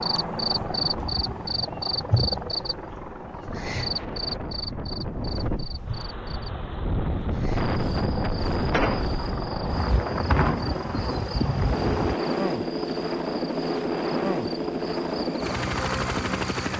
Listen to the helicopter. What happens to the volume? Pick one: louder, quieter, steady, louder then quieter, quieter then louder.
quieter then louder.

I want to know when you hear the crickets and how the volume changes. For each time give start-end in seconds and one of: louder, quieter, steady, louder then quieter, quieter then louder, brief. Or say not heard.
0.0-16.6 quieter.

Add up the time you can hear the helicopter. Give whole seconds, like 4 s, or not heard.
17 s.